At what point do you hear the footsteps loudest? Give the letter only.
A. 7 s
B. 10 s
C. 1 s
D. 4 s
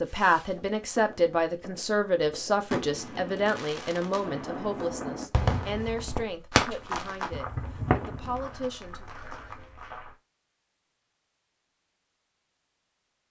A.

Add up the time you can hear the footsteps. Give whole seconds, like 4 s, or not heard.
5 s.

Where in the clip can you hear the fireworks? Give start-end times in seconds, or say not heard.
0.1-8.7.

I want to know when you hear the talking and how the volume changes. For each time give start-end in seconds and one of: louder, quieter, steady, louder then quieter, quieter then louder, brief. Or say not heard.
0.0-9.1 quieter.